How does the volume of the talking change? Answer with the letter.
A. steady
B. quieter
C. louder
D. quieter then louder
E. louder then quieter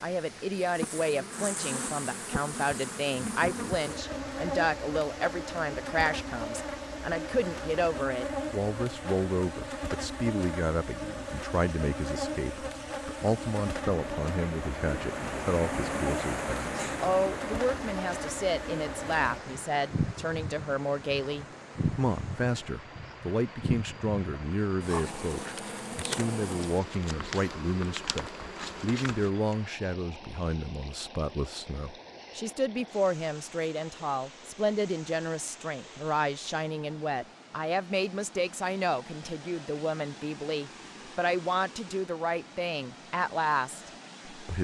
A.